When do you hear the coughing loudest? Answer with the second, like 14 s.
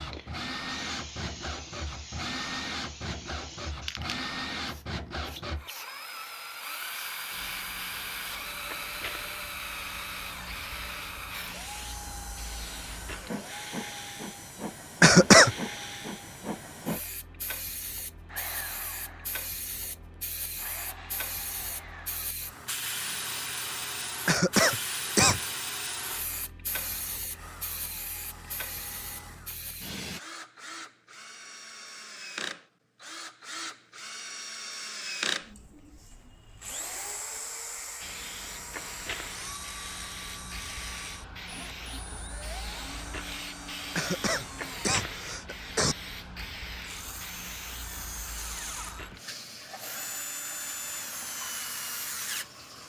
15 s.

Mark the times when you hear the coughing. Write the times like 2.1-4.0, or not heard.
15.0-15.6, 24.2-25.5, 44.0-46.0.